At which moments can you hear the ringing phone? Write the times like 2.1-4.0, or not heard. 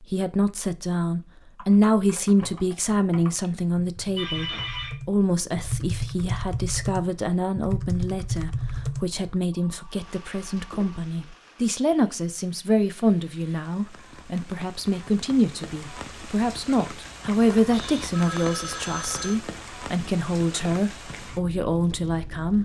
4.2-5.0, 9.5-11.0, 17.7-19.4.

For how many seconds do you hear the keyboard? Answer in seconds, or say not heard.
8 s.